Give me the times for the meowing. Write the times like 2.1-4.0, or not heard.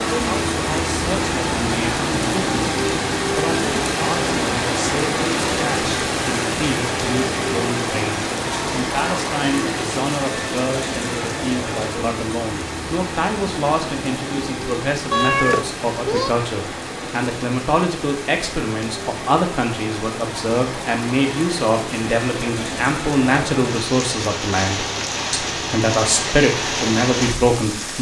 15.1-16.3.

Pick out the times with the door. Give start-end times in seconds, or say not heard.
not heard.